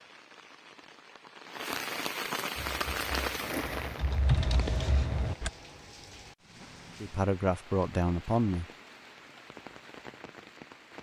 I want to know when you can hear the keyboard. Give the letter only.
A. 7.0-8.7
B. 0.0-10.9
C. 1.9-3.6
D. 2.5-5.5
D.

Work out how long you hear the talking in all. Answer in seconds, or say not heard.
2 s.